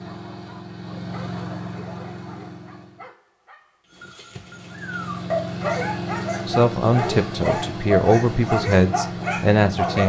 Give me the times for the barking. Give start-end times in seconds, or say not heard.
0.0-10.0.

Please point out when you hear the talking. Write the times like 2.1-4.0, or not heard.
6.5-10.0.